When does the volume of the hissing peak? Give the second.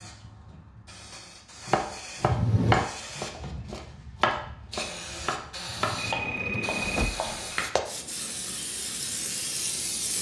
10 s.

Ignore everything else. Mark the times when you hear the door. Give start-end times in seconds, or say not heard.
2.2-2.9, 5.7-7.2.